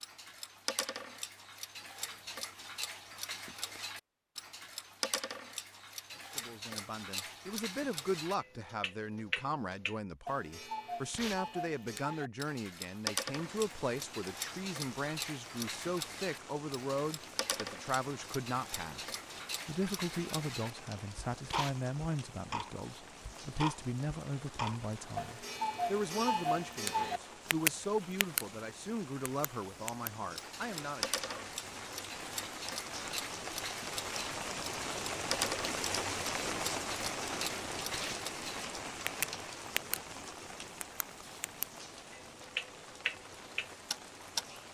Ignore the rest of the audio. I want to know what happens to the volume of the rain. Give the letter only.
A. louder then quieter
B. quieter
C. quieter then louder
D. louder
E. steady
A.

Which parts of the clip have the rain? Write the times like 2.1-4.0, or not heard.
13.3-44.6.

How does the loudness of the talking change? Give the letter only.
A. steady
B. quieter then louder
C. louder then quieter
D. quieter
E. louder
A.